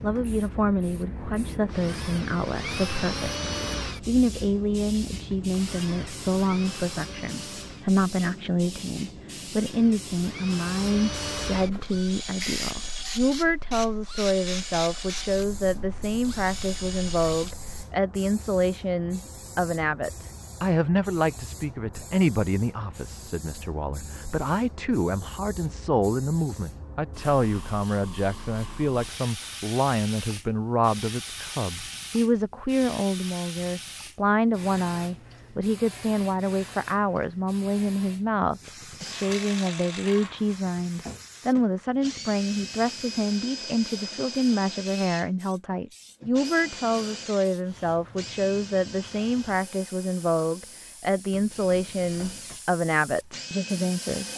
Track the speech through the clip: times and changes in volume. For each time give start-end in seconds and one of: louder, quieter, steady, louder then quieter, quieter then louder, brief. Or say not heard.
0.0-54.2 steady.